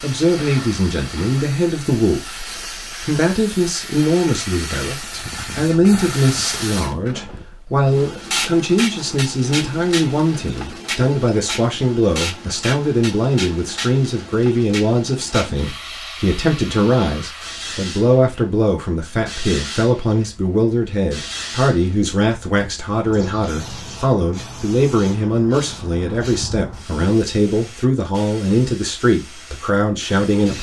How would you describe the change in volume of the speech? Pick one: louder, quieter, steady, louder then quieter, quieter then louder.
steady.